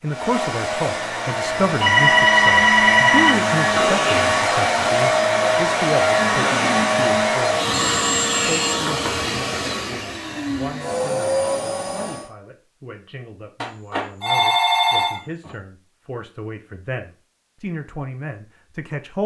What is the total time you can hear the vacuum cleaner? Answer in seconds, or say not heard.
12 s.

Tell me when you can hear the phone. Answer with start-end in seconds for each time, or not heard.
1.8-3.4, 7.7-8.7, 13.6-15.5.